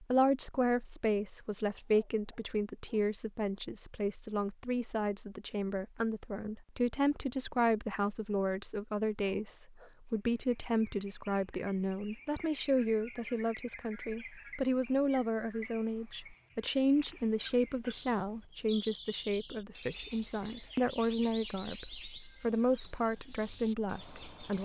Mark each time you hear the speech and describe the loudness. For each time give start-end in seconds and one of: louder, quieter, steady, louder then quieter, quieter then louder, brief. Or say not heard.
0.0-24.5 steady.